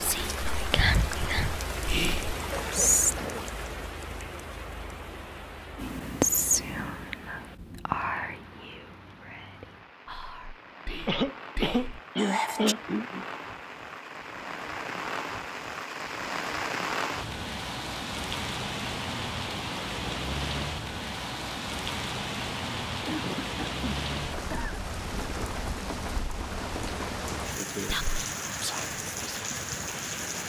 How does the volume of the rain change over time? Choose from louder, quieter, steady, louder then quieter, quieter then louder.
quieter then louder.